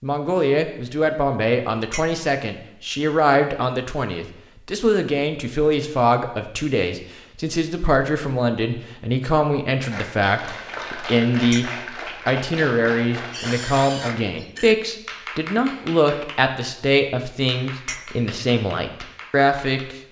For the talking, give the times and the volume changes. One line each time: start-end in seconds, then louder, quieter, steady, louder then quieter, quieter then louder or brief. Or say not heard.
0.0-19.9 steady.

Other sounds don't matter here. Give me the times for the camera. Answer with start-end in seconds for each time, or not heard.
not heard.